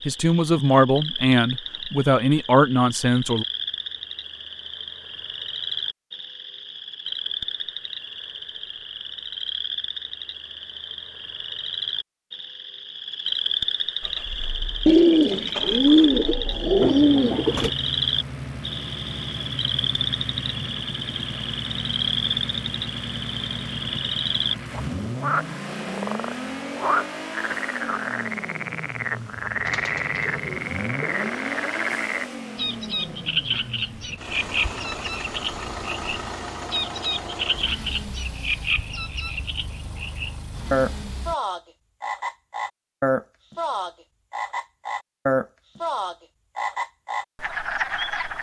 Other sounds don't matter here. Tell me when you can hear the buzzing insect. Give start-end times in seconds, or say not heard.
not heard.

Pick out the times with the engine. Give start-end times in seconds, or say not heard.
14.0-41.4.